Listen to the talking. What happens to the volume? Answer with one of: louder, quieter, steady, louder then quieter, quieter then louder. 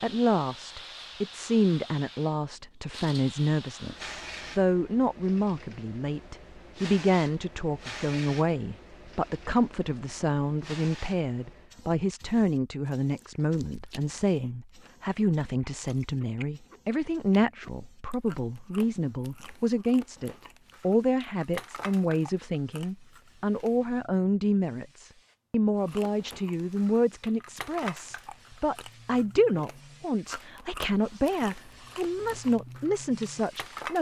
steady.